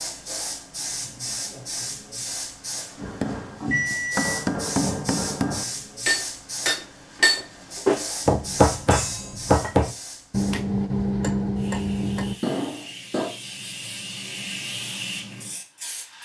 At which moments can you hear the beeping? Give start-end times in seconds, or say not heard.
3.6-4.5.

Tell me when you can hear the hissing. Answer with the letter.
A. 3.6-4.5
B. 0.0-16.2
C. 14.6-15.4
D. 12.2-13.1
B.